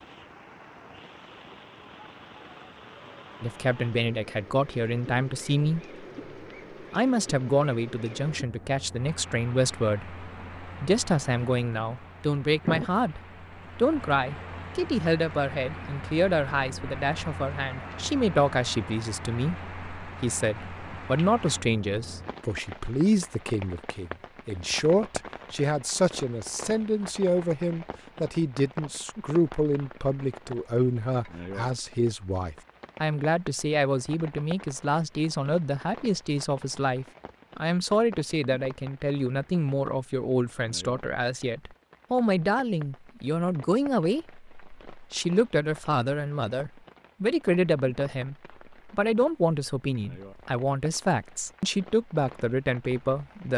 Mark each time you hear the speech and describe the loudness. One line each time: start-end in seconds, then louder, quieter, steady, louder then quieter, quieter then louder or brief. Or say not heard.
3.4-5.8 brief
6.9-53.5 steady.